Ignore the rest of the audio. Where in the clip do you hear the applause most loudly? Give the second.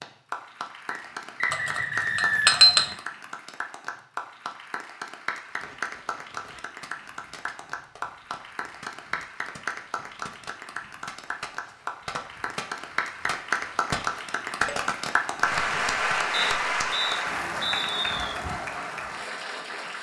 16 s.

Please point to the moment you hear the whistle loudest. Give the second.
2 s.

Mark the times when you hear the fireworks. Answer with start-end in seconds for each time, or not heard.
5.5-16.1.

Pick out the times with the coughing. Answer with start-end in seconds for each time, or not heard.
not heard.